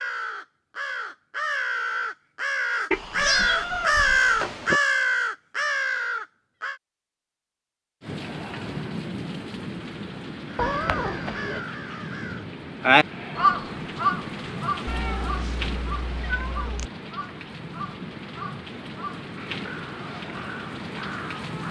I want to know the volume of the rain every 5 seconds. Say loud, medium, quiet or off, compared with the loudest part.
off, loud, loud, loud, loud.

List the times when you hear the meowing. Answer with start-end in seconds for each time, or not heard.
2.9-4.8, 10.6-11.6, 14.8-16.9.